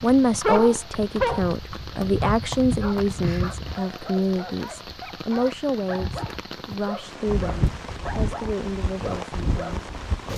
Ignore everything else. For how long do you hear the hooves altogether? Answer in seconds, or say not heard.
8 s.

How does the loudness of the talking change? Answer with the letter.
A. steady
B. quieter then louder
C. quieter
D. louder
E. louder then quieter
C.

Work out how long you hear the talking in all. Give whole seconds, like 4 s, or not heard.
10 s.